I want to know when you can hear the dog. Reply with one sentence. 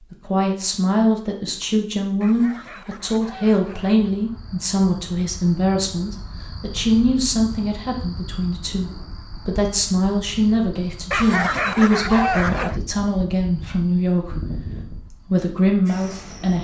You can hear the dog from 2.2 to 4.0 s and from 11.1 to 12.8 s.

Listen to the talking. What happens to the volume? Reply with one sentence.
The loudness of the talking stays about the same.